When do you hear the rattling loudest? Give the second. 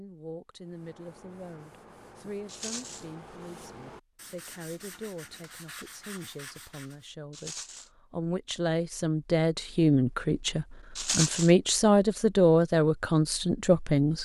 11 s.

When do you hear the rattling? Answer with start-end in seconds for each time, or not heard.
2.5-3.0, 7.3-7.9, 10.9-11.5.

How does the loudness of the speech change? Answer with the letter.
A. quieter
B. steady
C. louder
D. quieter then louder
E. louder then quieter
C.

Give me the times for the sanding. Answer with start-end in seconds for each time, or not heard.
0.6-7.1.